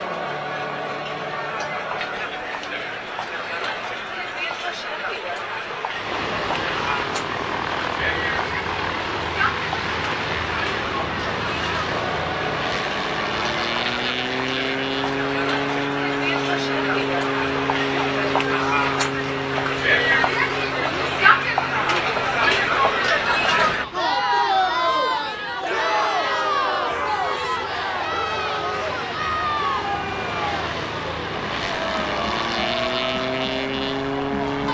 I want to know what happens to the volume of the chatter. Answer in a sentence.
The volume of the chatter goes up, then down.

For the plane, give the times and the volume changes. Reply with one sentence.
You can hear the plane from 5.9 to 34.7 s, getting quieter then louder.